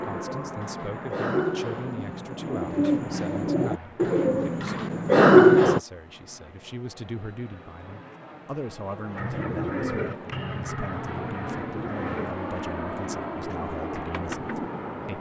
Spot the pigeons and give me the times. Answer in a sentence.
You can hear the pigeons from 0.0 to 5.8 s and from 9.2 to 14.8 s.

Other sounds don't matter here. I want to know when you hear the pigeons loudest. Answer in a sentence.
The volume of the pigeons peaks at 5 seconds.